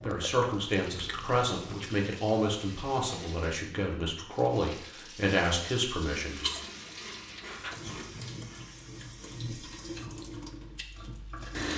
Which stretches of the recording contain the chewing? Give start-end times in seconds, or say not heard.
0.0-2.0, 6.4-9.4.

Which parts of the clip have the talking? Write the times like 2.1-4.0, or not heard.
0.0-6.5.